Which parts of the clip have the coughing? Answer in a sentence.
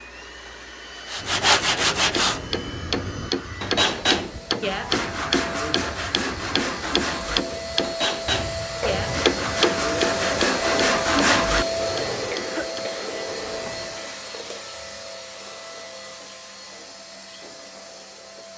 You can hear the coughing from 11.8 to 14.1 s.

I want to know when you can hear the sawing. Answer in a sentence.
You can hear the sawing from 1.1 to 11.7 s.